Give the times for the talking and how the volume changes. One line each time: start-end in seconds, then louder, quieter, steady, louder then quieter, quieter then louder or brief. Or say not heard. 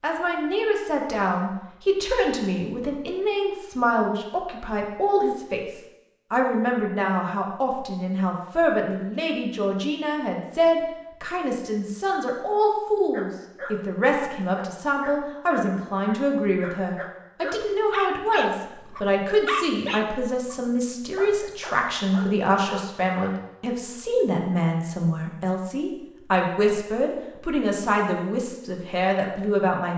0.0-29.9 steady.